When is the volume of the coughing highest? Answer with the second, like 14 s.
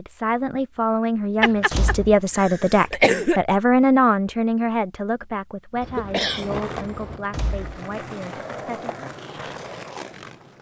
3 s.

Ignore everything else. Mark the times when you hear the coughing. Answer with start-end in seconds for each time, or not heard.
1.4-3.4, 5.8-7.2.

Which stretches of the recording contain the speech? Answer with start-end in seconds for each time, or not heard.
0.0-9.1.